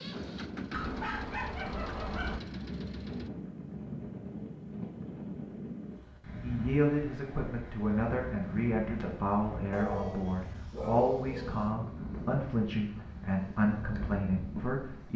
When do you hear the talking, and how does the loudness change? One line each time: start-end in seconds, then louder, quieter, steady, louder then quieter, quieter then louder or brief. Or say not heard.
6.4-15.1 steady.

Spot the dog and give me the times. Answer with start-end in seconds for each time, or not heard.
0.7-2.4, 9.7-11.7.